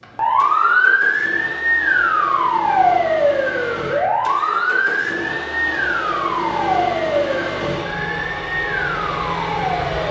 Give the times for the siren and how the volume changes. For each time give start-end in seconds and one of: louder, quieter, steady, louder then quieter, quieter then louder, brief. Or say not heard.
0.0-10.0 quieter.